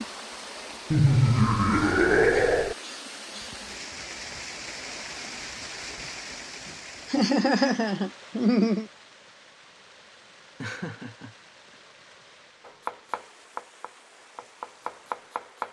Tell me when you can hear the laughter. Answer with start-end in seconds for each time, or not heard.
0.9-2.8, 7.1-8.8, 10.6-11.3.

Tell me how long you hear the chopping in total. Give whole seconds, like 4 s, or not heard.
3 s.